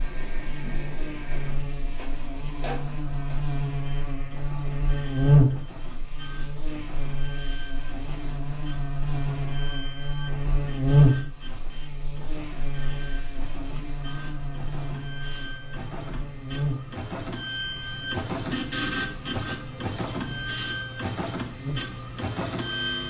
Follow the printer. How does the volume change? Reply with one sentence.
The loudness of the printer goes up.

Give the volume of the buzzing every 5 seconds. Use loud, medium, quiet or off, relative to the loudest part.
medium, loud, loud, medium, medium.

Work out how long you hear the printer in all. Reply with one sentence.
You can hear the printer for 23 seconds altogether.